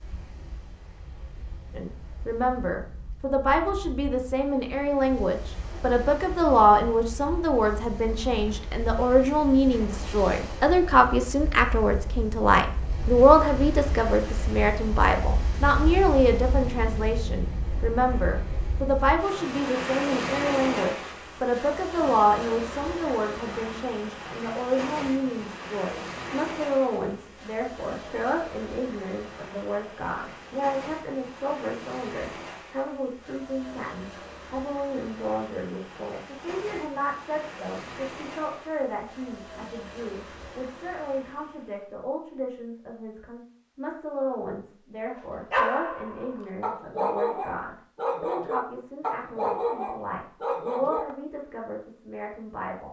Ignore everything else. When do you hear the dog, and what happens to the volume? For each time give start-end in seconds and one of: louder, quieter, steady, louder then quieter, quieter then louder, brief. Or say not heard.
45.0-51.1 steady.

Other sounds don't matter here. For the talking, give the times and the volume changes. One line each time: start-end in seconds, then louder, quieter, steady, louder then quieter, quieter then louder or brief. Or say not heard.
1.7-52.8 quieter.